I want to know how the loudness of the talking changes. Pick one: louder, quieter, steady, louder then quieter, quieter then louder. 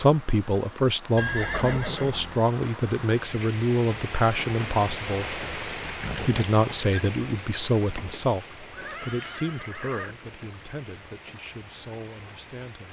quieter.